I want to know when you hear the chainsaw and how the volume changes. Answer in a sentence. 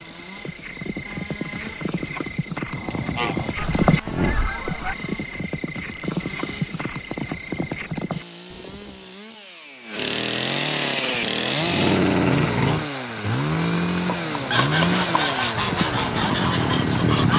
You can hear the chainsaw from 0.0 to 17.3 s, getting louder.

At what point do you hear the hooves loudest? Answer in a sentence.
The volume of the hooves peaks at 4 seconds.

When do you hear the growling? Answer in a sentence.
The growling can be heard from 3.6 to 4.3 s and from 11.1 to 12.9 s.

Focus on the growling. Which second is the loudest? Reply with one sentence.
The volume of the growling peaks at 12 seconds.